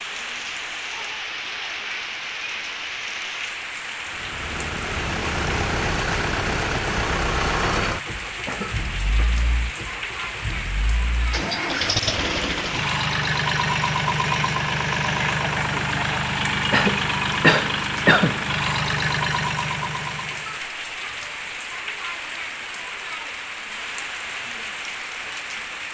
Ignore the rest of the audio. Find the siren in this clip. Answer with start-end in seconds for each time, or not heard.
not heard.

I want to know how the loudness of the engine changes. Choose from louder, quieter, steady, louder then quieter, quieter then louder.
quieter then louder.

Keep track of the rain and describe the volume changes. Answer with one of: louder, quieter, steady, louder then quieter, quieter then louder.
steady.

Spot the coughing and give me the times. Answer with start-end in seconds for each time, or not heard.
8.4-9.3, 16.7-18.4.